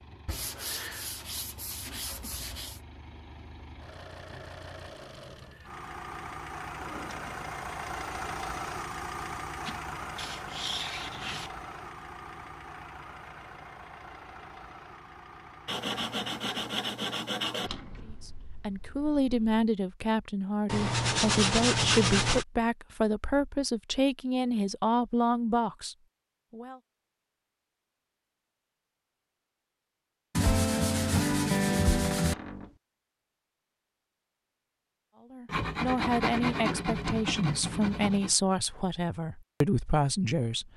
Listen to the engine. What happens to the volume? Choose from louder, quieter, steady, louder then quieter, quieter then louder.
louder then quieter.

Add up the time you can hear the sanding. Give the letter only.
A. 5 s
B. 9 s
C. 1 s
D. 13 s
D.